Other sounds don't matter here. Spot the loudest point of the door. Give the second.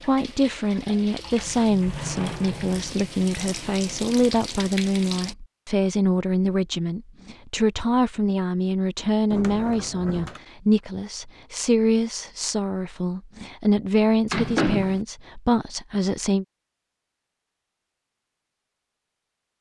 15 s.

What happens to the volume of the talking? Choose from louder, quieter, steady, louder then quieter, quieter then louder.
steady.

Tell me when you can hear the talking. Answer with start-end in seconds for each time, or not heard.
0.1-16.4.